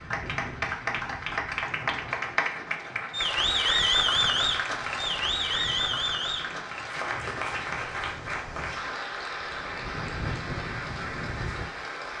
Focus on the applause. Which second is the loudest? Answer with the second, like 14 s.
4 s.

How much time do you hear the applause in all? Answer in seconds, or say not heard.
12 s.